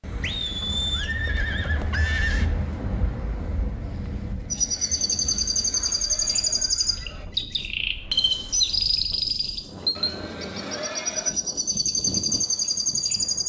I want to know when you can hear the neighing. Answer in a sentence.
You can hear the neighing from 0.2 to 2.5 s, from 5.2 to 7.2 s and from 9.9 to 11.3 s.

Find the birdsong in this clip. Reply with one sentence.
The birdsong can be heard from 4.5 to 13.4 s.